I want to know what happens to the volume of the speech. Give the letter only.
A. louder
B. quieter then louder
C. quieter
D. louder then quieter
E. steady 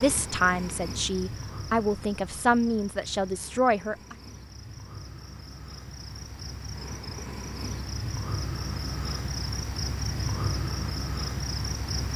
E.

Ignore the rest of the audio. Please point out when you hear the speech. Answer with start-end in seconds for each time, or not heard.
0.0-4.2.